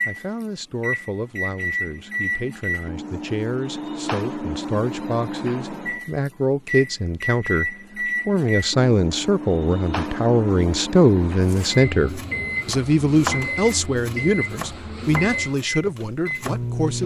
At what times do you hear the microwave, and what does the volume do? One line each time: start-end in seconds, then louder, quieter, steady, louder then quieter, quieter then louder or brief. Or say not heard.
0.0-17.0 steady.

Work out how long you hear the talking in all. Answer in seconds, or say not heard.
17 s.